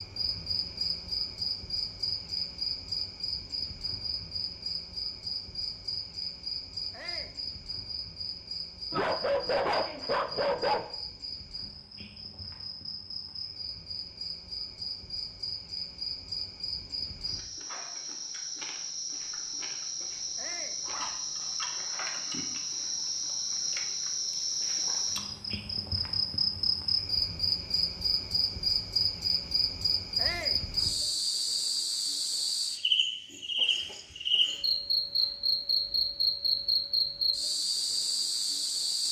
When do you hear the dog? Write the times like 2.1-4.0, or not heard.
8.9-10.8, 20.9-21.8.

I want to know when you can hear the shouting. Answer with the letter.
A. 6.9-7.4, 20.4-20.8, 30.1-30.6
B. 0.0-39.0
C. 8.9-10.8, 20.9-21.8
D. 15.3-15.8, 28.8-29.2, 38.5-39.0
A.